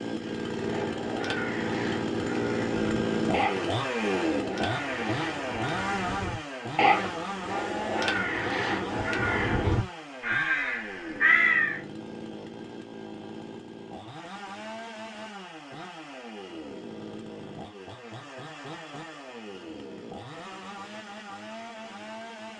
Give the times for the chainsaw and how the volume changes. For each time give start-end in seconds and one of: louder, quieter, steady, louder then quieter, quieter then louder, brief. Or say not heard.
0.0-22.5 quieter.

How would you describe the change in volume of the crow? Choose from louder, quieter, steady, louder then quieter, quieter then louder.
louder.